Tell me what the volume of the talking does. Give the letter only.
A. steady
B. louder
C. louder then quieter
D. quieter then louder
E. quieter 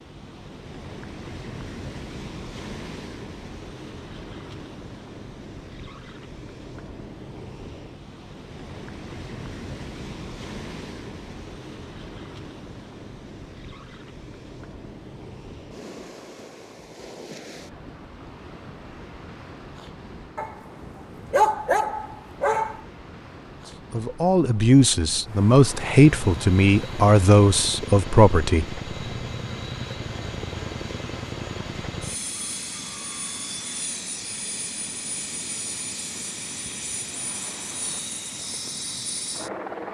A.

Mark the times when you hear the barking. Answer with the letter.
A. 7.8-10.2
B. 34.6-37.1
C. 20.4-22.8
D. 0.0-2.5
C.